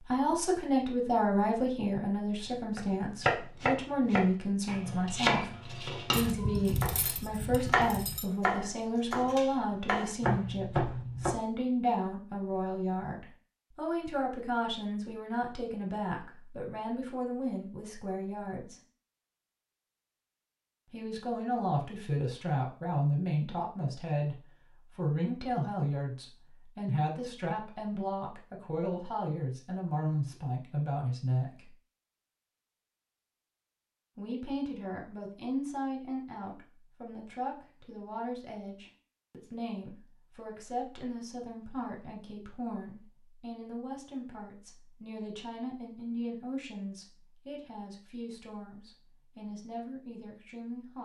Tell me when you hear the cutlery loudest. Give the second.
7 s.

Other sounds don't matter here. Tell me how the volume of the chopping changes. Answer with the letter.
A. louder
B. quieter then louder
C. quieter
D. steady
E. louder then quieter
D.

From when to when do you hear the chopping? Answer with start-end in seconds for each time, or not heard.
2.8-7.1, 7.7-11.3.